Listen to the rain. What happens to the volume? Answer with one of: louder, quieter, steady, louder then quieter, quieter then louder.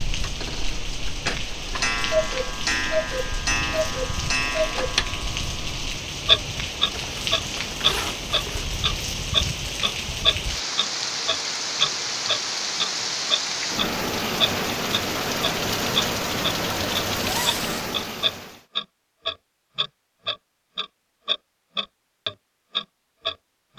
louder.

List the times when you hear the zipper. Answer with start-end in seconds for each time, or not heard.
6.9-8.7, 17.2-17.9.